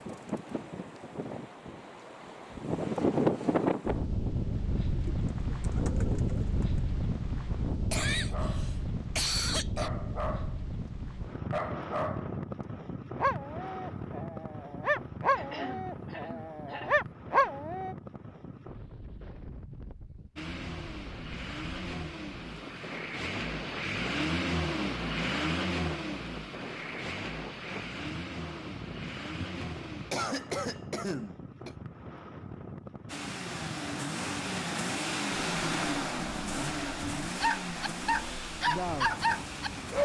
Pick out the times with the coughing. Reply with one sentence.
You can hear the coughing from 7.9 to 9.9 s, from 15.3 to 16.9 s and from 29.4 to 31.8 s.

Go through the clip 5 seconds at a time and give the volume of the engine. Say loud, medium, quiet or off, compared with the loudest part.
off, off, off, off, loud, loud, loud, loud.